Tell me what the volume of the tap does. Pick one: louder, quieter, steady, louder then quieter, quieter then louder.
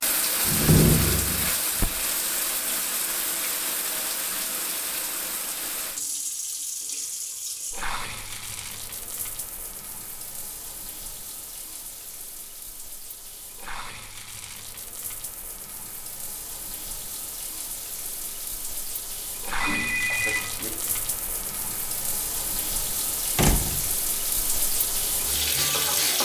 quieter then louder.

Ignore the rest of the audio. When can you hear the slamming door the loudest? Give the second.
1 s.